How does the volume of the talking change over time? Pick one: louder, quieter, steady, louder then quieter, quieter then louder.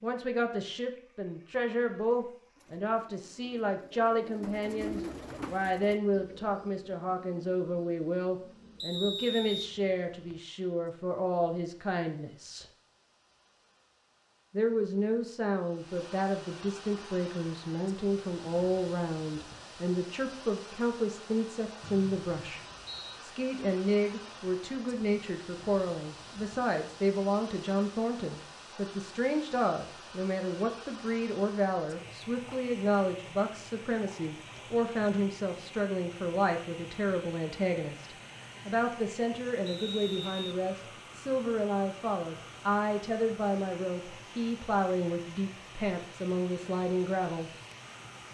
steady.